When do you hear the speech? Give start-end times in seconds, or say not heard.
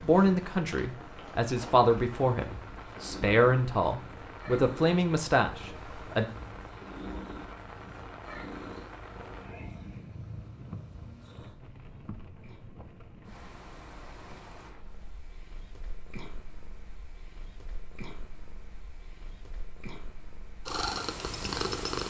0.0-6.2.